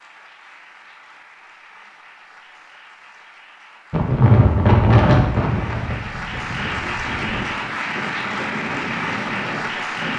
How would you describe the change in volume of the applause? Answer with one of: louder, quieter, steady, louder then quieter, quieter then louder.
louder.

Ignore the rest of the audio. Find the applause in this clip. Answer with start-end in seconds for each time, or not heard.
0.0-10.1.